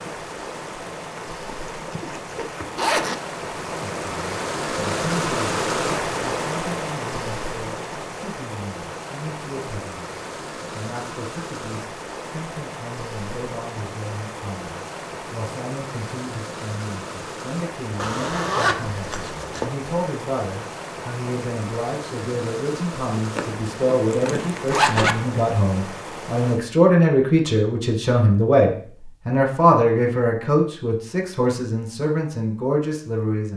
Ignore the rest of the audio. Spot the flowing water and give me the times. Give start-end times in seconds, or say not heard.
0.0-26.6.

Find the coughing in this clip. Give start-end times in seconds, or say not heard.
not heard.